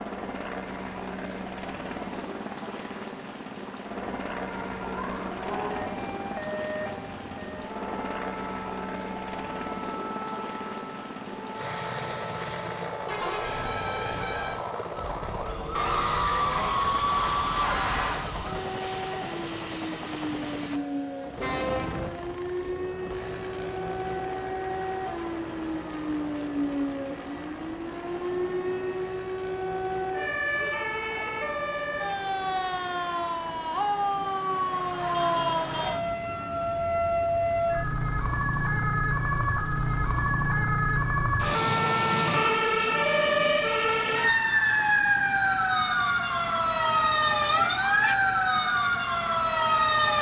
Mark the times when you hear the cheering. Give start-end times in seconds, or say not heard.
15.8-18.3.